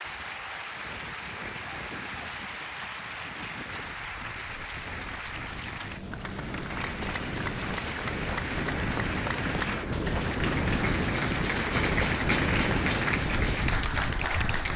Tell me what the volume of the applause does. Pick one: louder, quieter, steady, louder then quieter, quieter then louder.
louder.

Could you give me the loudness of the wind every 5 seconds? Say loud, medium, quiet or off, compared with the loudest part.
quiet, medium, loud.